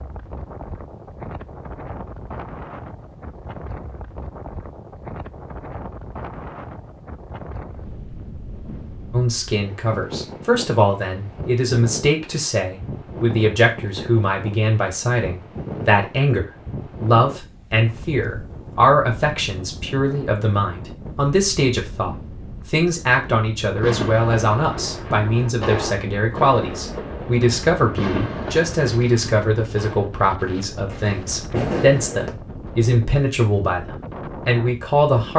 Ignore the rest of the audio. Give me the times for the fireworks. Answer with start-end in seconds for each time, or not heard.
23.8-32.3.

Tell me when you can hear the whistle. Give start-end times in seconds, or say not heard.
not heard.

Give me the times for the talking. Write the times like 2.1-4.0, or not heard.
9.1-35.3.